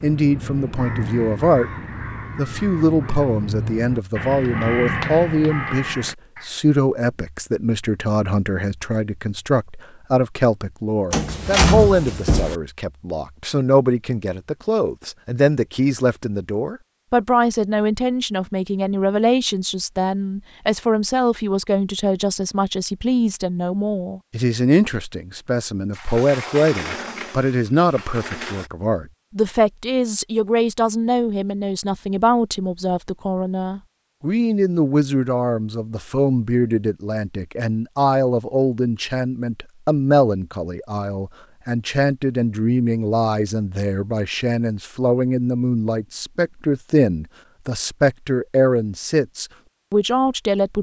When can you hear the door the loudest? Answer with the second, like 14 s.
12 s.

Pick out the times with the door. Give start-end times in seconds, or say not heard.
11.1-12.6, 25.9-28.7.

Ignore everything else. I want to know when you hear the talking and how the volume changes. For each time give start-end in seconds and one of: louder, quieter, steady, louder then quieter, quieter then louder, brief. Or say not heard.
0.0-1.7 brief
2.4-50.7 steady.